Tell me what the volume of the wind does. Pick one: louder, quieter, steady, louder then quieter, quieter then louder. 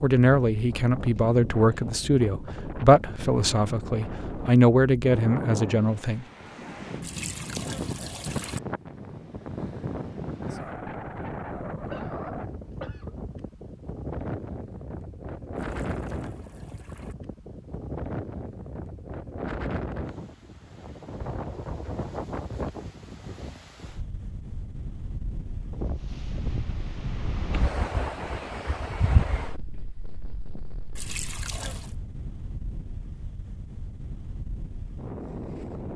steady.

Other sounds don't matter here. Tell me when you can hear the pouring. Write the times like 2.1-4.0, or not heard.
7.0-8.6, 15.6-17.1, 30.9-31.9.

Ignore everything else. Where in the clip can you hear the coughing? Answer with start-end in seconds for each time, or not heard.
11.9-13.2.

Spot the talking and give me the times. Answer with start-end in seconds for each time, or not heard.
0.0-6.2.